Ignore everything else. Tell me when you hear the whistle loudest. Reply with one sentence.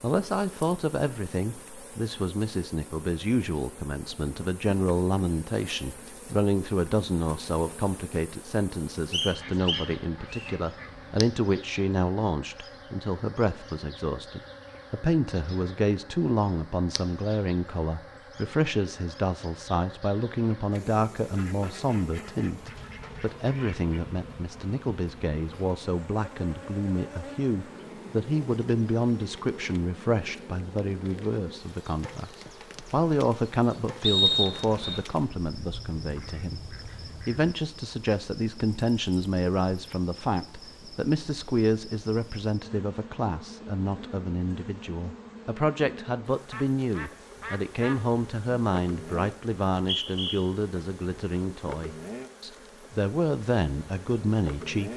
The volume of the whistle peaks at 34 seconds.